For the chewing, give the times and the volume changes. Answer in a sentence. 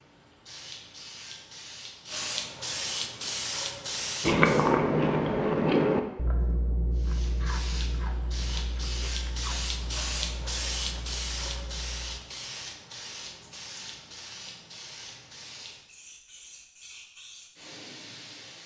The chewing can be heard from 4.2 to 12.2 s, getting quieter.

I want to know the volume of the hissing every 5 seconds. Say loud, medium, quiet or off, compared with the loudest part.
loud, loud, loud, medium.